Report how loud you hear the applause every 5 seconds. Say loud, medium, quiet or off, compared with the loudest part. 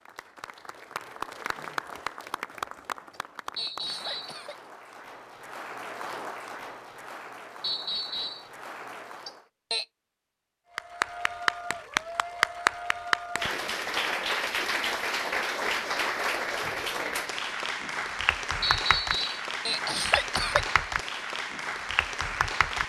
medium, quiet, loud, loud, loud.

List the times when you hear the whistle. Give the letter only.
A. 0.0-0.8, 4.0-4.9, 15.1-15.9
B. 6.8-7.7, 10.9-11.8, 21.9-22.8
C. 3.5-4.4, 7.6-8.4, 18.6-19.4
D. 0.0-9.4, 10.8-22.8
C.